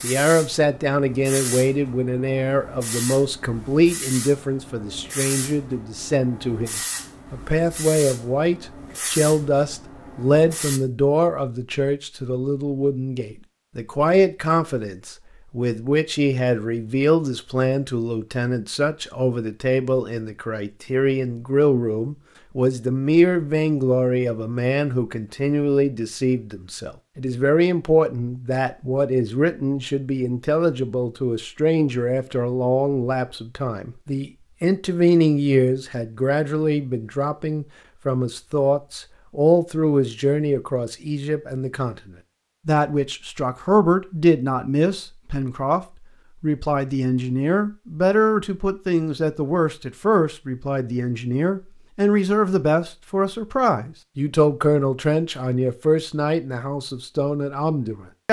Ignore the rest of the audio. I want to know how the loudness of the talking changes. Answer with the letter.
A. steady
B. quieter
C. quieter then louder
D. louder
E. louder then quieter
A.